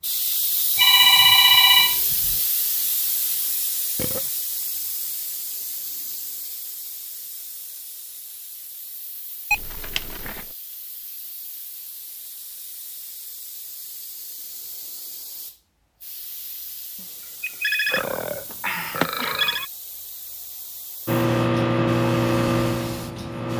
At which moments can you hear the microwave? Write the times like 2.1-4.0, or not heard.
21.1-23.5.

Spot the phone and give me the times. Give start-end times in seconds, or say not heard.
0.8-2.4, 9.5-10.4, 17.4-18.0, 18.9-19.6.